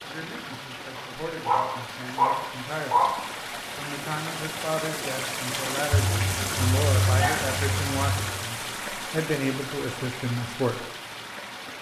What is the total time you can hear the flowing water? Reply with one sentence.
The flowing water can be heard for 12 seconds in total.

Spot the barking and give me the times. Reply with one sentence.
You can hear the barking from 0.9 to 3.2 s and from 5.9 to 8.2 s.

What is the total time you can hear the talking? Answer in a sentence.
You can hear the talking for 10 seconds altogether.